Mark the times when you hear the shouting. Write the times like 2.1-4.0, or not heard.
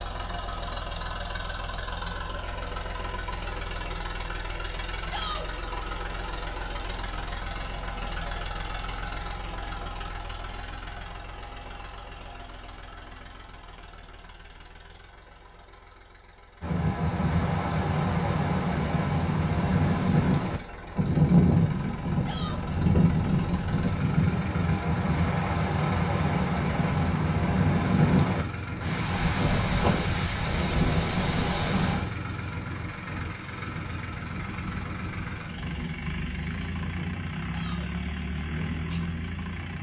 5.0-5.5, 22.2-22.6, 37.5-37.9.